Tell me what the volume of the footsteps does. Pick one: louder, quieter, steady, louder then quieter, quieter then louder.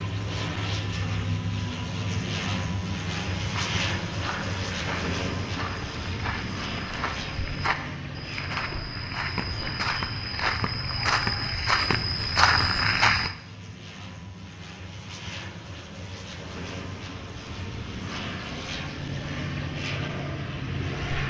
louder.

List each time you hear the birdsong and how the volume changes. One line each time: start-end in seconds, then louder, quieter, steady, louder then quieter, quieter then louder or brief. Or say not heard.
not heard.